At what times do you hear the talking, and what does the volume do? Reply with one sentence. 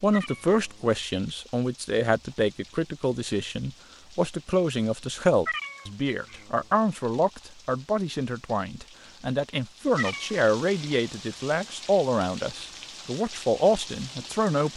You can hear the talking from 0.0 to 14.7 s, at a steady volume.